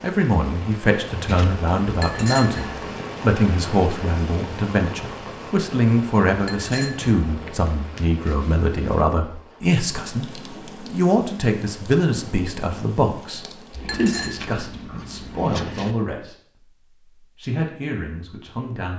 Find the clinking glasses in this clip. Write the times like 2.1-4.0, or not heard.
1.9-2.9, 6.3-7.5, 13.8-14.3.